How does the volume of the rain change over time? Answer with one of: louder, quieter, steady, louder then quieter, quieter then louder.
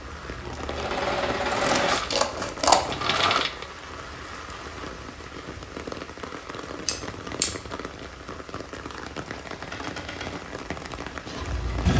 steady.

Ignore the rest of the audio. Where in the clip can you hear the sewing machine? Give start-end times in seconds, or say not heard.
0.0-3.6, 9.5-11.9.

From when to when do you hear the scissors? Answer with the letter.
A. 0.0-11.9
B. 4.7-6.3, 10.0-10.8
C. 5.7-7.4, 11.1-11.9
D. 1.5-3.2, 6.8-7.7
D.